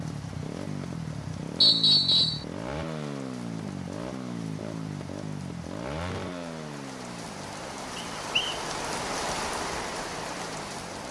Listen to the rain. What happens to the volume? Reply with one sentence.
The loudness of the rain goes up.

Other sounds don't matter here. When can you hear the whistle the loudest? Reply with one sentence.
The volume of the whistle peaks at 2 seconds.